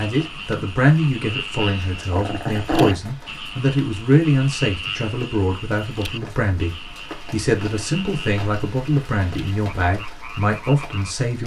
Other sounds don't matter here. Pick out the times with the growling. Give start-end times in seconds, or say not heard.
1.6-3.0.